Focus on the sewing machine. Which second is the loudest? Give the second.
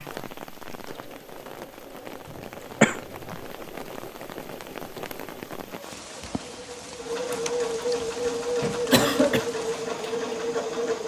8 s.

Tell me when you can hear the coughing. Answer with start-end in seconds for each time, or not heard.
2.8-3.4, 8.6-9.4.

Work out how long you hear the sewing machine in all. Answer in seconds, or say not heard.
11 s.